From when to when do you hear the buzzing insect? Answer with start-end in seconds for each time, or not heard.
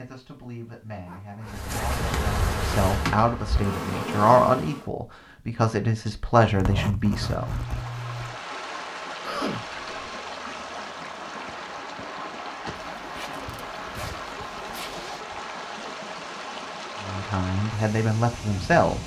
1.4-4.8.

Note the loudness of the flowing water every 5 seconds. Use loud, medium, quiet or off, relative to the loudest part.
off, loud, loud, loud.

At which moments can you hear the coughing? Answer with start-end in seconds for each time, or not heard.
9.2-10.1.